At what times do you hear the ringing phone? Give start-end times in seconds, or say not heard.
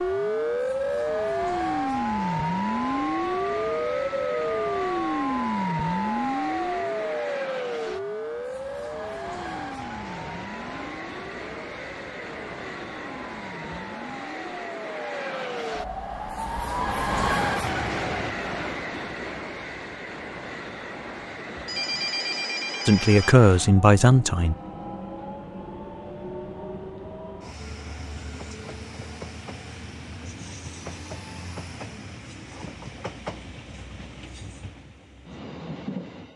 21.6-23.4.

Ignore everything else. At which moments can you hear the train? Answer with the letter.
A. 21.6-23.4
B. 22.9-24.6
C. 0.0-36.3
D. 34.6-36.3
C.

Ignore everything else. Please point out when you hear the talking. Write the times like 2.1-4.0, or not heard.
22.9-24.6.